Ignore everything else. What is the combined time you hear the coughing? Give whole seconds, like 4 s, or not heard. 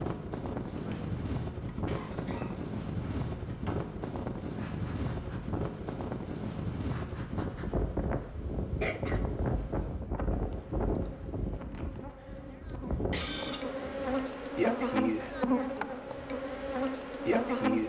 3 s.